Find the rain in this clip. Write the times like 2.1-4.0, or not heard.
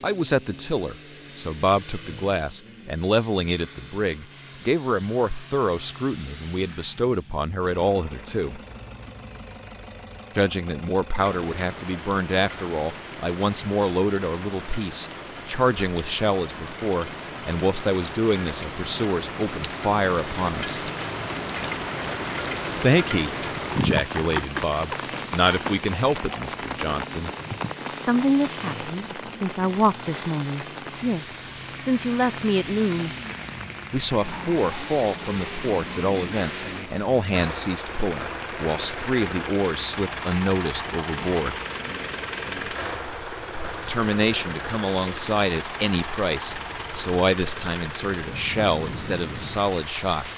11.2-50.3.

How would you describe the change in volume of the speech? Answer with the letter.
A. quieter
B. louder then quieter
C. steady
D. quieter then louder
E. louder
C.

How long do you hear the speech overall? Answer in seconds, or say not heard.
44 s.